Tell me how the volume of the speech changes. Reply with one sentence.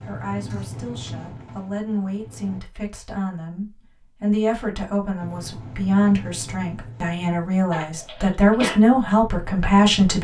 The volume of the speech goes up.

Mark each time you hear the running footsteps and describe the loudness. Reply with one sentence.
You can't hear the running footsteps here.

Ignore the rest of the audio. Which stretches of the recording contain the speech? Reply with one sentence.
You can hear the speech from 0.0 to 10.2 s.